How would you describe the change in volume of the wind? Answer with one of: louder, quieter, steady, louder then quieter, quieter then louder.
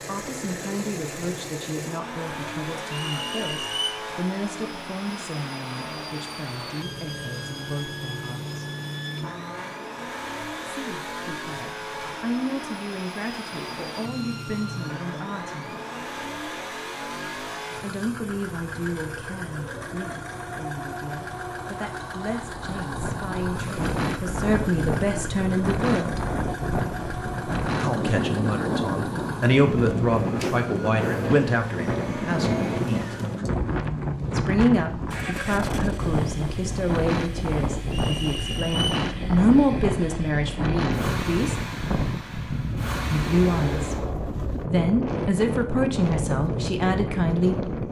steady.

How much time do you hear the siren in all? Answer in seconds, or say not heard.
not heard.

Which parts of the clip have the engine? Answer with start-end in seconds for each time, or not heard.
0.0-44.1.